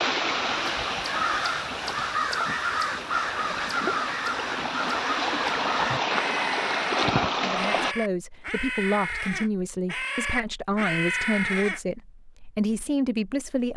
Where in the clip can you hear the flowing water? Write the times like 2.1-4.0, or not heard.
0.0-8.0.